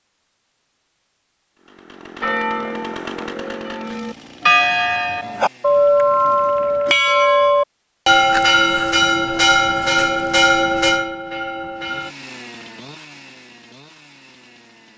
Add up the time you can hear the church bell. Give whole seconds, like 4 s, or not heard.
10 s.